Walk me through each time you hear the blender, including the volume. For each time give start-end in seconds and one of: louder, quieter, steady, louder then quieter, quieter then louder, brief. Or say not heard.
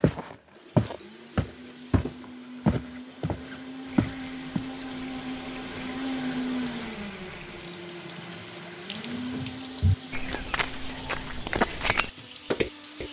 0.2-13.0 louder then quieter.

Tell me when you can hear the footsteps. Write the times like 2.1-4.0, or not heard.
0.0-4.7, 9.1-13.0.